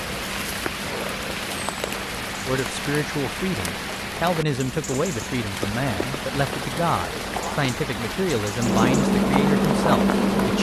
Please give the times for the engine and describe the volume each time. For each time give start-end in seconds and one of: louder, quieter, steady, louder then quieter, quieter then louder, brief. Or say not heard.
0.0-10.5 louder.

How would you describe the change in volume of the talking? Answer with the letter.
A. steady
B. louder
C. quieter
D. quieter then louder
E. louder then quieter
A.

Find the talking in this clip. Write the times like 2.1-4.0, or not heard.
2.5-10.5.